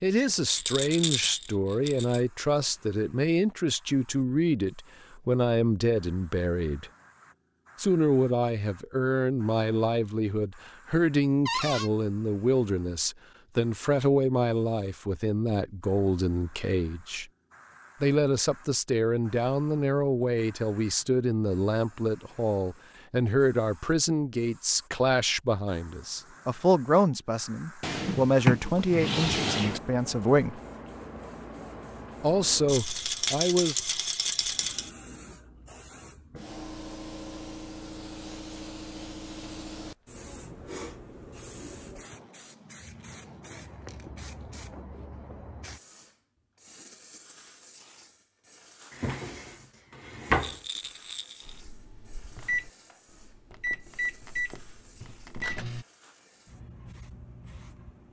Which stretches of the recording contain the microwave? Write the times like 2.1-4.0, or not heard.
51.5-55.9.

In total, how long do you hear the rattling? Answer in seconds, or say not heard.
5 s.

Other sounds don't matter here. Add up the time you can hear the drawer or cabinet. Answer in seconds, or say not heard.
4 s.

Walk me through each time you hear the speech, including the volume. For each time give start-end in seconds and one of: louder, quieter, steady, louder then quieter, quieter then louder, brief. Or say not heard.
0.0-6.9 steady
7.8-17.2 steady
18.0-30.6 steady
32.2-33.8 brief.